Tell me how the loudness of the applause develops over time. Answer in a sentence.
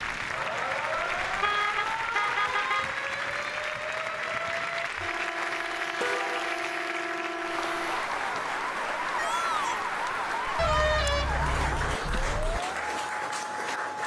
The volume of the applause stays about the same.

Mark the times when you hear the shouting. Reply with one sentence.
You can hear the shouting from 9.2 to 9.9 s.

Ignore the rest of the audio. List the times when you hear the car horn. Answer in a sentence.
The car horn can be heard from 0.9 to 2.9 s, from 5.0 to 6.5 s and from 10.6 to 12.6 s.